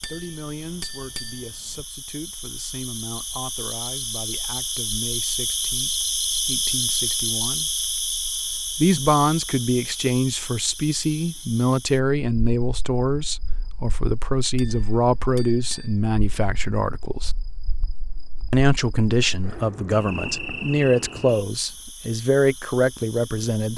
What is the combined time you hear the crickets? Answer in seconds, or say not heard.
24 s.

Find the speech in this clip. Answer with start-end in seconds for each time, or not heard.
0.1-7.8, 8.8-17.3, 18.5-23.7.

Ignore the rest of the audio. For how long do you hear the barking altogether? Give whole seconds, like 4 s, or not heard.
not heard.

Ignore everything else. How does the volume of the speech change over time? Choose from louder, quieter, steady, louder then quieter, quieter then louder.
louder.